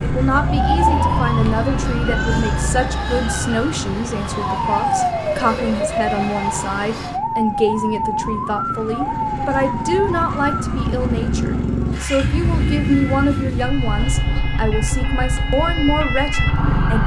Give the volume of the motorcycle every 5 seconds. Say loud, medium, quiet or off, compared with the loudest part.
loud, medium, loud, loud.